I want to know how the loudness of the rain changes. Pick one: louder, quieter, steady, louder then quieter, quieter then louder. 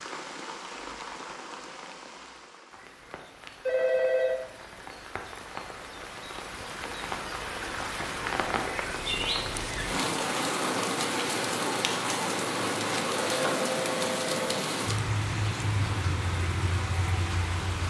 louder.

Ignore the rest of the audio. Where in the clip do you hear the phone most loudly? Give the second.
4 s.